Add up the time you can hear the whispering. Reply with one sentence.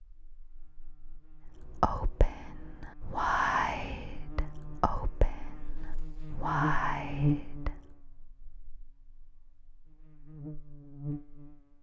You can hear the whispering for 6 seconds altogether.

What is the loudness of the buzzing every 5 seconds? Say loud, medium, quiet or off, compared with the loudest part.
quiet, loud, medium.